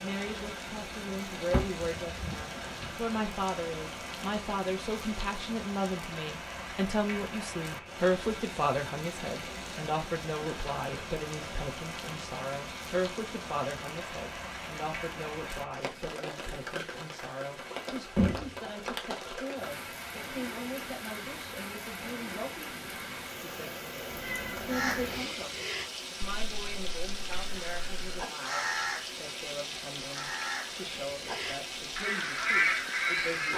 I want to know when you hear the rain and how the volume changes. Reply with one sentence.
You can hear the rain from 0.0 to 33.5 s, at a steady volume.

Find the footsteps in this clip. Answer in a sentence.
You can't hear the footsteps here.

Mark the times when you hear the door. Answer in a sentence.
The door can be heard from 1.5 to 2.9 s and from 18.1 to 18.6 s.